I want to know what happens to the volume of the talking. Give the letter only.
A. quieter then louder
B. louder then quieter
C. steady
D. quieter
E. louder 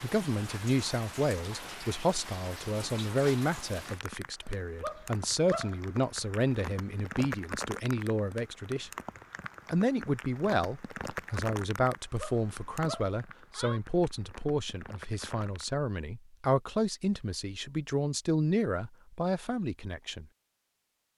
C.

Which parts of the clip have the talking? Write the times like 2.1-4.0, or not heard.
0.0-8.9, 9.7-20.2.